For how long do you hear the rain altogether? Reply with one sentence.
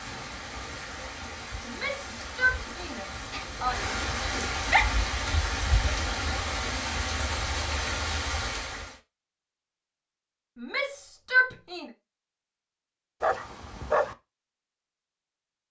You can hear the rain for 9 seconds altogether.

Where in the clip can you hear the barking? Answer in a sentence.
You can hear the barking from 3.3 to 4.9 s and from 13.2 to 14.2 s.